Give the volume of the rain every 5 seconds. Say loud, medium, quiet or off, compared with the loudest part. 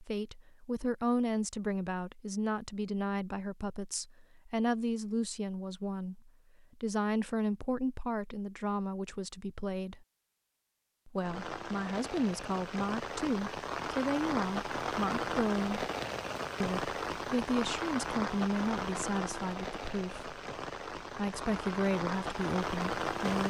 off, off, loud, loud, loud.